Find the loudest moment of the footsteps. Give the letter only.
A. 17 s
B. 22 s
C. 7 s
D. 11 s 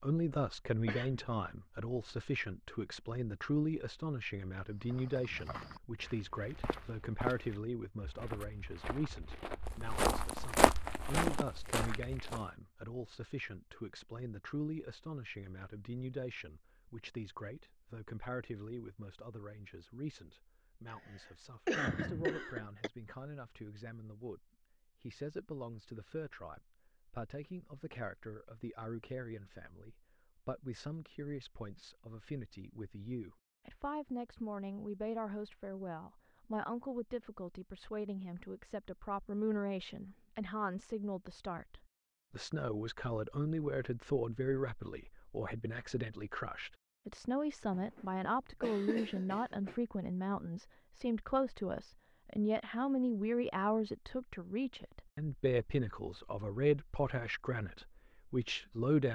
D.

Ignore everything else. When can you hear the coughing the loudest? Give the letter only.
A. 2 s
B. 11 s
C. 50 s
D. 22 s
D.